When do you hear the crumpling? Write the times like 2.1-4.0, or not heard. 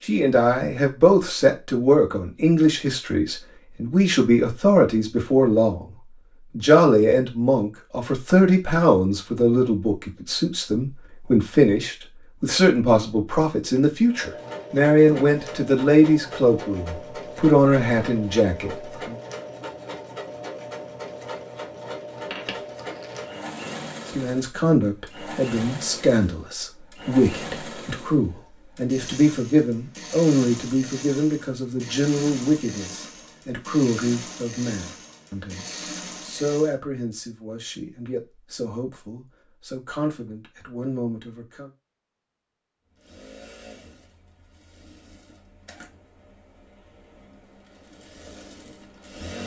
22.3-23.3.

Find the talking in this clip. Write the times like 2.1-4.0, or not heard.
0.0-5.9, 6.5-19.1, 24.1-41.7.